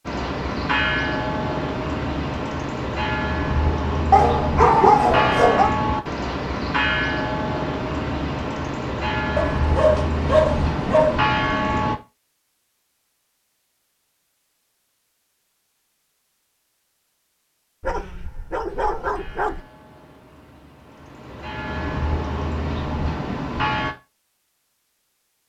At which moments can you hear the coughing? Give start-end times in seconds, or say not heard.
not heard.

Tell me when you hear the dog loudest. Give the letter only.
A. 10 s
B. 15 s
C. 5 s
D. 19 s
C.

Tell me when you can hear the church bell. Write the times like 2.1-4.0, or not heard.
0.1-11.9, 18.6-23.9.